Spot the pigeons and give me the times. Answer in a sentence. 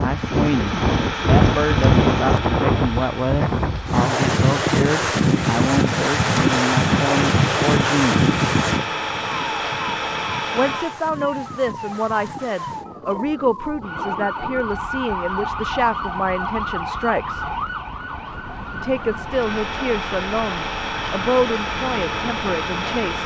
The pigeons can't be heard in this clip.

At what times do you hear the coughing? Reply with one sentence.
The coughing can't be heard in this clip.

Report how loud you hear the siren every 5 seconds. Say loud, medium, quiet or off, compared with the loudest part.
off, off, loud, loud, medium.